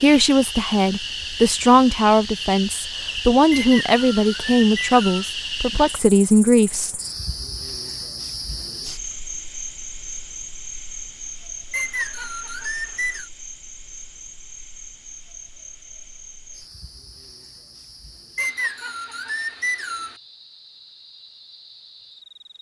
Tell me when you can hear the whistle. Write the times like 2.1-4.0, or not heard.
3.5-5.3, 11.7-13.2, 18.4-20.1.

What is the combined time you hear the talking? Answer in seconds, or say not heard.
7 s.